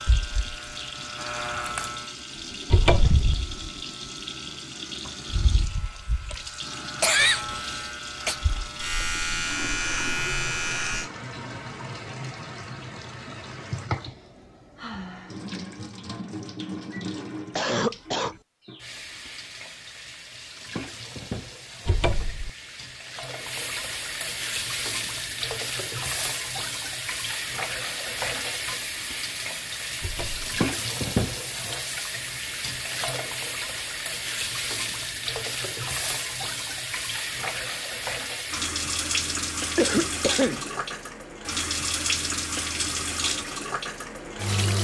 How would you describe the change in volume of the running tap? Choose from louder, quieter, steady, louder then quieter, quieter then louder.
louder.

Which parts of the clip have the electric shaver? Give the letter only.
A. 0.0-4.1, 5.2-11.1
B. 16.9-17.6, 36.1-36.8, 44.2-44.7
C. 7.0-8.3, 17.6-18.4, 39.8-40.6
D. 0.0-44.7
A.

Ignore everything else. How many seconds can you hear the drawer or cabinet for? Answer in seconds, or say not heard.
2 s.